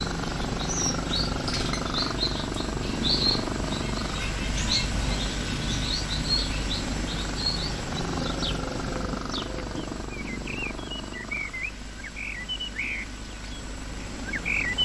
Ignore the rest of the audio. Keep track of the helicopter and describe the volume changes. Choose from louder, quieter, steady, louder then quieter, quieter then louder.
quieter.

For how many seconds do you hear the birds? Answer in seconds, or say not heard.
15 s.